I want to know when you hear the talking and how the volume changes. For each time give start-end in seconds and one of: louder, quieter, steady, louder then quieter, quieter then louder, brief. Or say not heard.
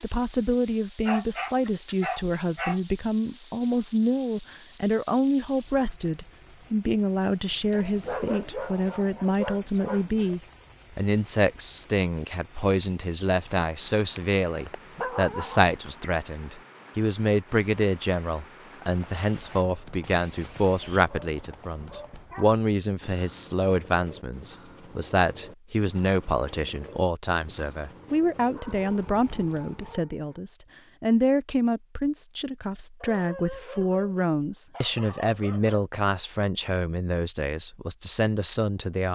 0.0-39.0 steady.